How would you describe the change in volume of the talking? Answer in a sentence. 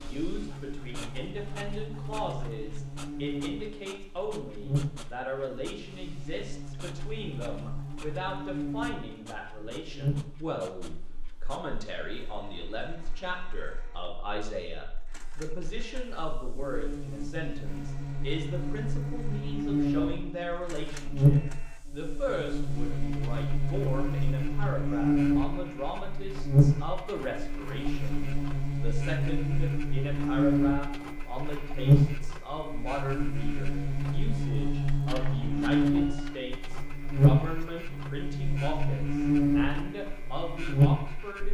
The loudness of the talking stays about the same.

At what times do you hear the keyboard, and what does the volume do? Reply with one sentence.
You can't hear the keyboard here.